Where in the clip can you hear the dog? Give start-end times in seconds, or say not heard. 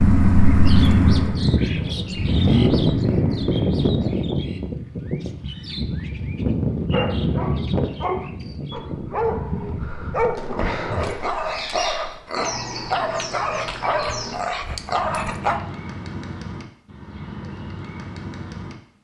6.9-15.6.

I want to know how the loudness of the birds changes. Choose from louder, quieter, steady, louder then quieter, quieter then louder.
quieter.